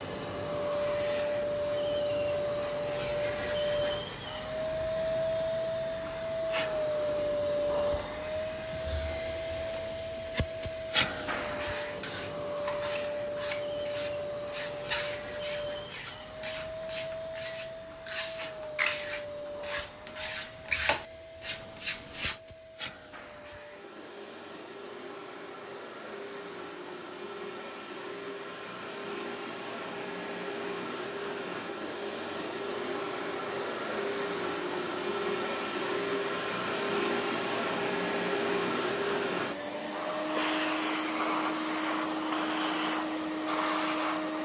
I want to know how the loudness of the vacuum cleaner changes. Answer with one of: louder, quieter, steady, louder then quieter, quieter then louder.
quieter then louder.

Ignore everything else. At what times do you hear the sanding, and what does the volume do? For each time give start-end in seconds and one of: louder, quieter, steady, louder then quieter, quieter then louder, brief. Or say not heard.
11.6-22.4 louder.